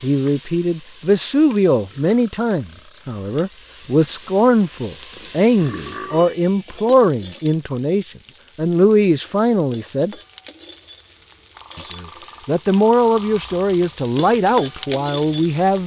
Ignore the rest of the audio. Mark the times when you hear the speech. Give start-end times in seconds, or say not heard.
0.0-10.2, 11.8-15.8.